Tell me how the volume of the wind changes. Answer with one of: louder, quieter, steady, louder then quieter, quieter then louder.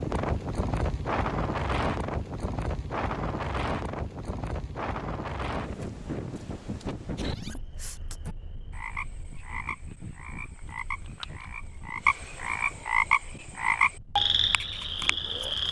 quieter.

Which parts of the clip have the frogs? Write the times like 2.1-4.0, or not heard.
7.2-15.6.